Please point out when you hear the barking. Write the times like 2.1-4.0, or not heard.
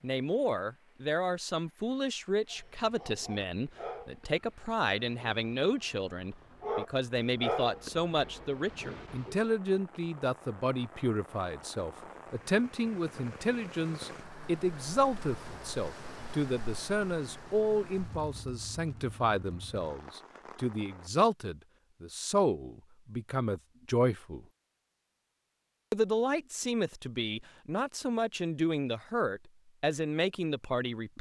2.5-9.4.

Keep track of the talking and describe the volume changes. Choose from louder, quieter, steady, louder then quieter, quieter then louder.
steady.